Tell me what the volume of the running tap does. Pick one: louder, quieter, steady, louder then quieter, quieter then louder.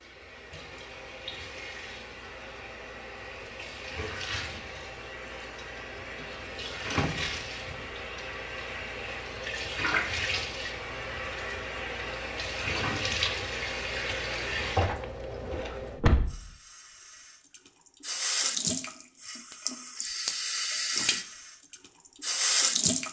louder.